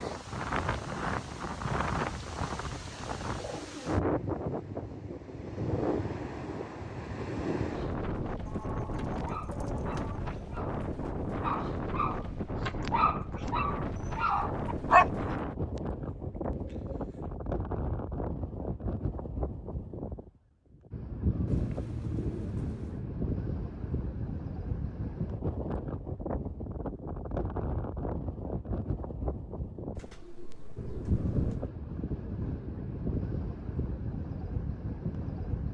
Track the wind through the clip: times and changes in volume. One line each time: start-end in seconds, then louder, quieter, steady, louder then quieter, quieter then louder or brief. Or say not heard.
0.0-35.7 steady.